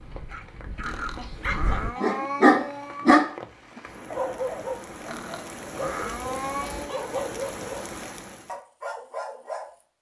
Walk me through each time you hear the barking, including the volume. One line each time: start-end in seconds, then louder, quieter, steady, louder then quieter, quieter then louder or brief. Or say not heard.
0.0-9.8 louder then quieter.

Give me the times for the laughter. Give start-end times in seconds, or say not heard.
1.1-2.0, 6.6-7.2.